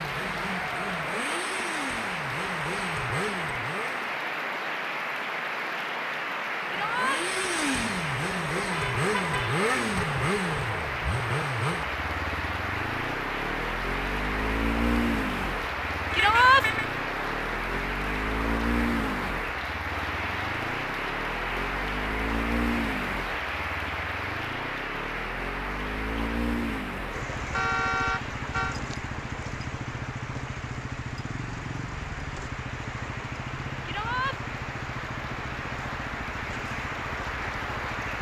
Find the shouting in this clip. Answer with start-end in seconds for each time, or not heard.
6.7-7.2, 16.1-16.6, 33.9-34.4.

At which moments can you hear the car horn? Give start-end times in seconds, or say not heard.
8.7-9.5, 16.1-16.9, 27.5-28.8.